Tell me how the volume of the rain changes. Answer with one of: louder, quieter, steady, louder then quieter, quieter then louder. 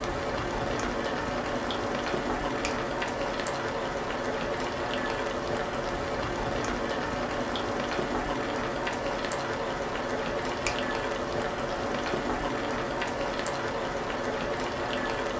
steady.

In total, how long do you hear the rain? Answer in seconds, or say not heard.
15 s.